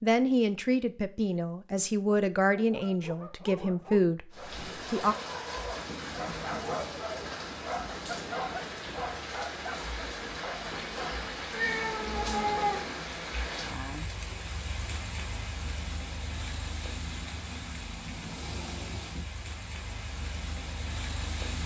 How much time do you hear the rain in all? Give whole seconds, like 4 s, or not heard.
17 s.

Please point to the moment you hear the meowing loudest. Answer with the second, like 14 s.
13 s.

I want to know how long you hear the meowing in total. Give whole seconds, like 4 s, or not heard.
3 s.